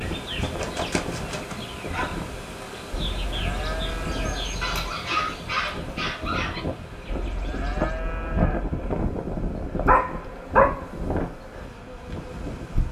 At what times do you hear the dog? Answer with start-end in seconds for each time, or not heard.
0.4-2.2, 4.6-6.6, 9.8-10.8.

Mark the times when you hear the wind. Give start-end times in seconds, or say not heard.
0.0-12.8.